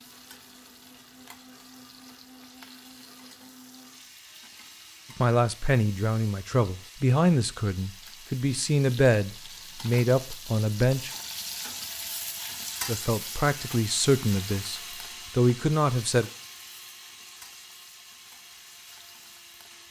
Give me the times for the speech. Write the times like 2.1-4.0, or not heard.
5.2-11.1, 12.8-16.3.